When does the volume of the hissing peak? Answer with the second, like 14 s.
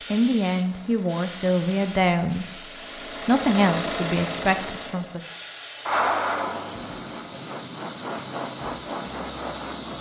6 s.